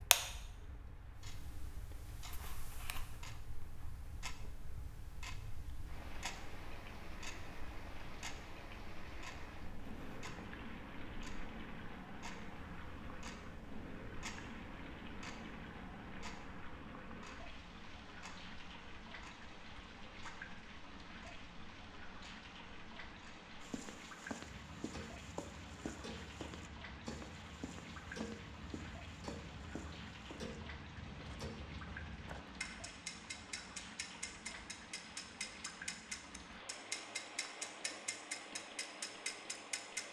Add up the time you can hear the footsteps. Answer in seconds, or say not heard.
9 s.